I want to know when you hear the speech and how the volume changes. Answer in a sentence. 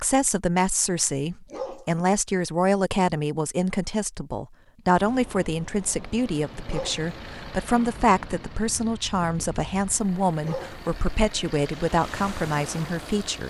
The speech can be heard from 0.0 to 13.4 s, at a steady volume.